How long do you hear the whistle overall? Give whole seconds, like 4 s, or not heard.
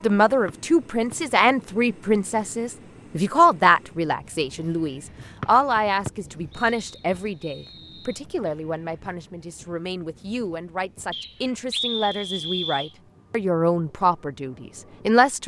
5 s.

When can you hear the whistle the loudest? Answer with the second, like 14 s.
12 s.